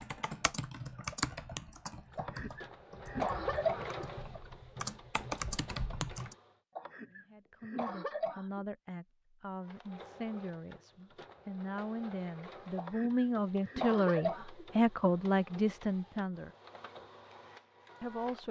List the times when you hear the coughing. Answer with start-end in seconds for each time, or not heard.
2.1-4.0, 6.8-8.7, 12.8-14.7.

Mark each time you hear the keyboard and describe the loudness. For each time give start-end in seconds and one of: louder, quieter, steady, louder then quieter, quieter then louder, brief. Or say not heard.
0.0-6.3 quieter then louder.